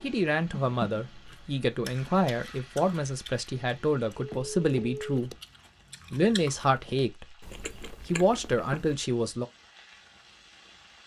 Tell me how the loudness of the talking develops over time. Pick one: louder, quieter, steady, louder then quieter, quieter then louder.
steady.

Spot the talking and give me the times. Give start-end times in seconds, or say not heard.
0.0-5.3, 6.1-9.4.